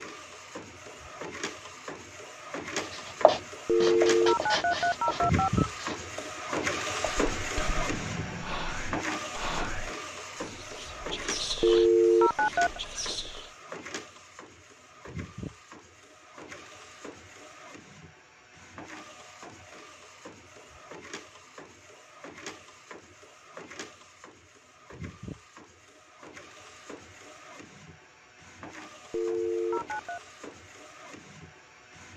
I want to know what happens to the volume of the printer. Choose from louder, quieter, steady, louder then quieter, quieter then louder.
quieter.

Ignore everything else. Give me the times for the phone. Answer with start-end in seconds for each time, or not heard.
3.6-5.7, 11.6-12.8, 29.1-30.2.